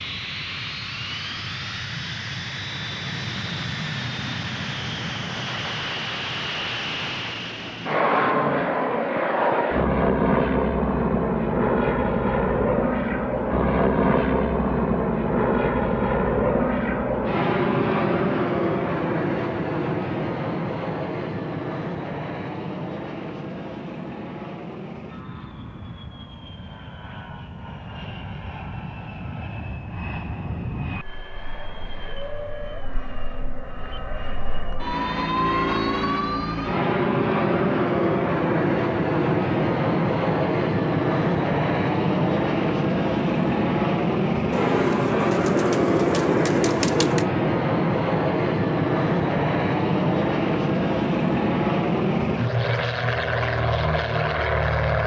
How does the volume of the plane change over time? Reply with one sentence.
The volume of the plane goes down, then up.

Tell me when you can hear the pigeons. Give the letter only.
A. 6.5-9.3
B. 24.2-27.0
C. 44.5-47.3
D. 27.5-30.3
C.